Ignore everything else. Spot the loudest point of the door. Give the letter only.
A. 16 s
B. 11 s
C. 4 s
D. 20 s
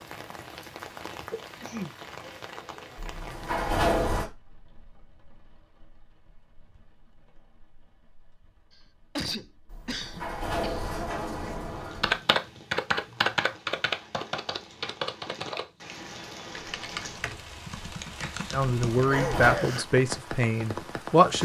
C.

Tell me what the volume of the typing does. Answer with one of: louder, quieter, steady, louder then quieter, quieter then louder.
quieter.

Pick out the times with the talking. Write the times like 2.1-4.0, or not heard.
18.5-21.4.